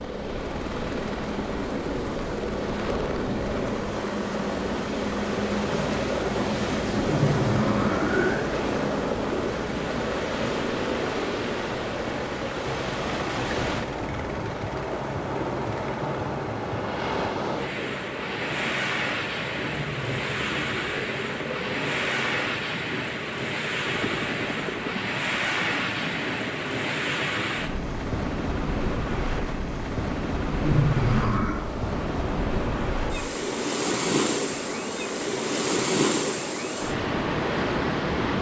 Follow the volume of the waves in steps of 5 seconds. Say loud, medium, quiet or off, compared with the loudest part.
medium, medium, medium, loud, loud, loud, loud, loud.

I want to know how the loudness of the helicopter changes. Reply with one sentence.
The volume of the helicopter goes down.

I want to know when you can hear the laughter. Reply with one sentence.
The laughter can be heard from 7.0 to 8.5 s, from 19.6 to 21.1 s and from 30.6 to 31.6 s.